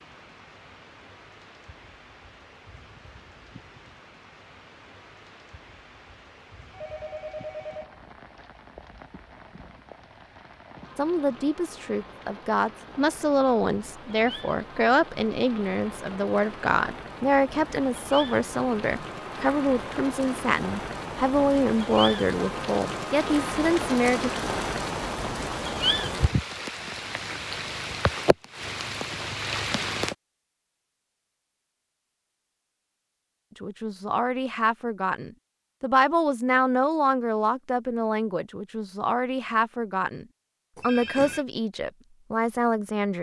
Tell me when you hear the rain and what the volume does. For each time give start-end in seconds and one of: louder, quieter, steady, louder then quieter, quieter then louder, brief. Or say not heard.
0.0-30.1 louder.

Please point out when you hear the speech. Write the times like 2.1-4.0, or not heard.
10.9-24.3, 33.6-43.1.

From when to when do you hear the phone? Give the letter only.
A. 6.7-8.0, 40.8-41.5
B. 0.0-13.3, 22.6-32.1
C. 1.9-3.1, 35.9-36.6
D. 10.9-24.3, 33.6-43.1
A.